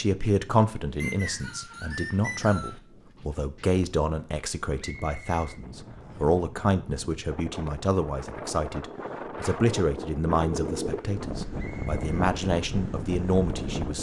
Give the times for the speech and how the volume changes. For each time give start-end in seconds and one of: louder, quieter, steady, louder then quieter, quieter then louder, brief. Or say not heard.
0.0-13.9 steady.